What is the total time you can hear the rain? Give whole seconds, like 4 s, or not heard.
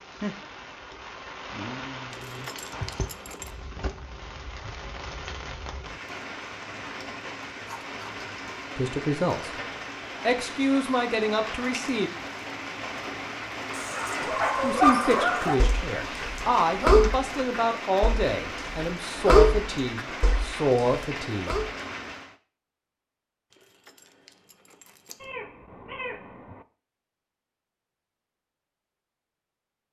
22 s.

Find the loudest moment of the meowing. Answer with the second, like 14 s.
26 s.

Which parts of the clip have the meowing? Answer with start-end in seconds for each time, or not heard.
7.6-8.2, 25.2-26.6.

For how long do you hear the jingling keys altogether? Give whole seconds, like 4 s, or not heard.
3 s.